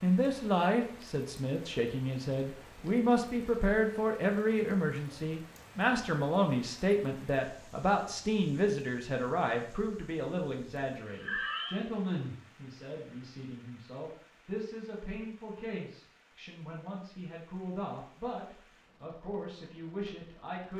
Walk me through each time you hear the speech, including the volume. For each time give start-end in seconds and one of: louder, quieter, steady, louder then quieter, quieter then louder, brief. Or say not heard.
0.0-20.7 quieter.